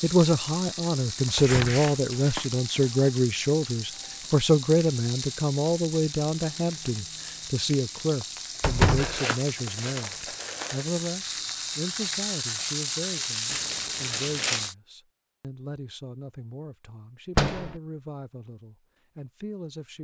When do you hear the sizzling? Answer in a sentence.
The sizzling can be heard from 0.0 to 14.8 s.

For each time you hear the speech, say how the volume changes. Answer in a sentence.
The speech can be heard from 0.0 to 19.9 s, getting quieter.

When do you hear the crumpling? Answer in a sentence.
You can hear the crumpling from 1.2 to 2.5 s, from 8.9 to 10.8 s and from 13.4 to 14.7 s.